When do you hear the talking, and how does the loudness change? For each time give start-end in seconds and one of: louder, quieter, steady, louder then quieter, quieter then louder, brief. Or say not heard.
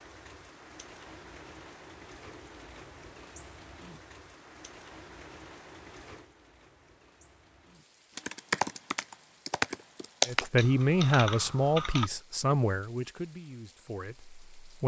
10.2-14.8 quieter.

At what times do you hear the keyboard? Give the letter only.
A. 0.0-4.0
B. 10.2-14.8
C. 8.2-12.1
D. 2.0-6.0
C.